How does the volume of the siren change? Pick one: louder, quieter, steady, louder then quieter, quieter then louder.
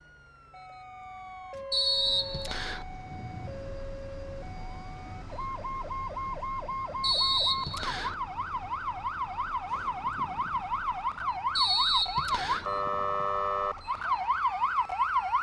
louder.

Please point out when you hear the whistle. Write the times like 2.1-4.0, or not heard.
1.7-2.9, 7.0-8.2, 11.6-12.7.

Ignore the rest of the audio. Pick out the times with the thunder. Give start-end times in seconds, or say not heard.
2.9-3.9.